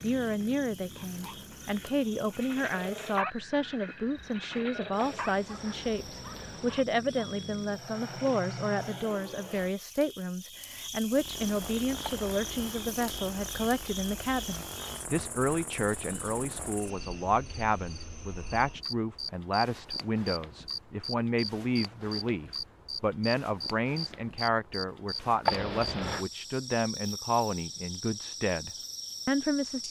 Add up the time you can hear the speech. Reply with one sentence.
The speech can be heard for 30 seconds in total.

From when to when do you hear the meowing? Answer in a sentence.
You can hear the meowing from 5.0 to 6.8 s, from 12.0 to 12.8 s and from 25.4 to 26.2 s.